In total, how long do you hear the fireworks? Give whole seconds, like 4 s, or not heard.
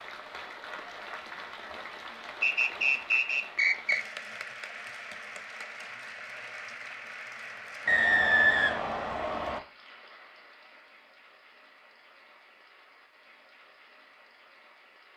not heard.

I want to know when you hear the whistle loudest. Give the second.
8 s.